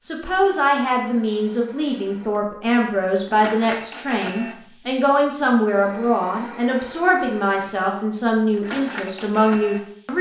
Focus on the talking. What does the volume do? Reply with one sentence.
The volume of the talking stays about the same.